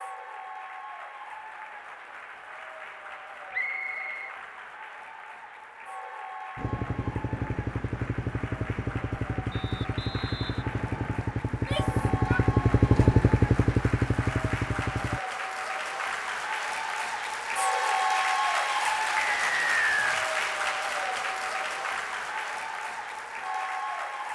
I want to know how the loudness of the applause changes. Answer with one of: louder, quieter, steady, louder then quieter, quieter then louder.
louder.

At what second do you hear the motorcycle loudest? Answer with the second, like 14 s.
13 s.